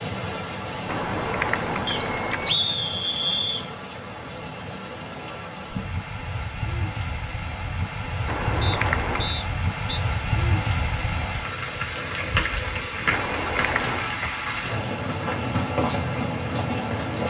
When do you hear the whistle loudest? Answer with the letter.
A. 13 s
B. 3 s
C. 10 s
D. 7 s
B.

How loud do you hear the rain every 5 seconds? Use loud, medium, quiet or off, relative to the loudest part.
medium, medium, loud, loud.